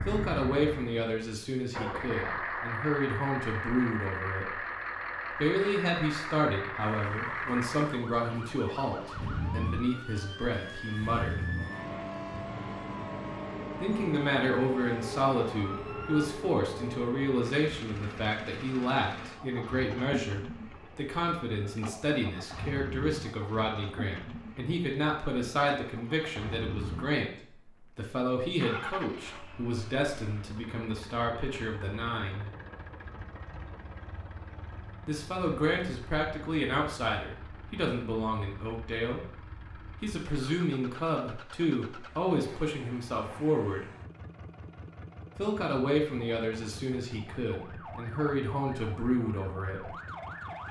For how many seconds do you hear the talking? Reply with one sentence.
You can hear the talking for 43 seconds altogether.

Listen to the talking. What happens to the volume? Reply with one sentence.
The loudness of the talking stays about the same.